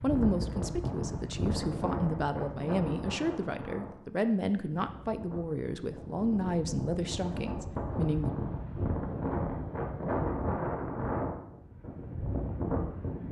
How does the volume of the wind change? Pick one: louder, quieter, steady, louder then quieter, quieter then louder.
quieter then louder.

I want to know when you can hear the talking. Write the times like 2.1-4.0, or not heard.
0.0-8.3.